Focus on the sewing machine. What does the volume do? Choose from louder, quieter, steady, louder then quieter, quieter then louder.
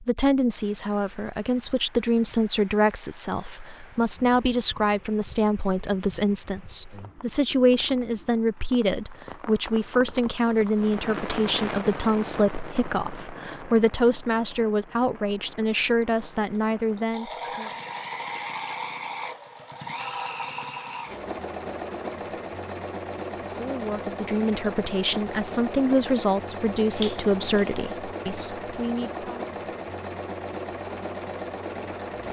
steady.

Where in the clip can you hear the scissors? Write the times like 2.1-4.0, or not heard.
26.9-27.6.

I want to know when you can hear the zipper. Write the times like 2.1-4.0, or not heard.
not heard.